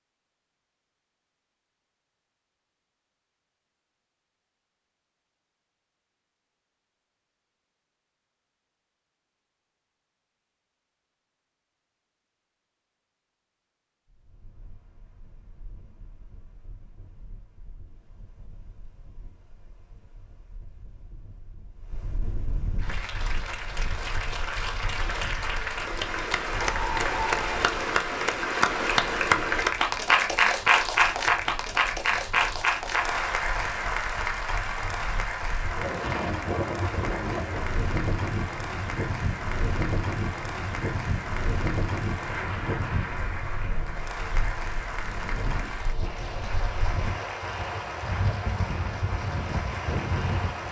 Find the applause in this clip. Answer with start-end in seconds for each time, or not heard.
22.8-50.6.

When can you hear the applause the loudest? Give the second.
31 s.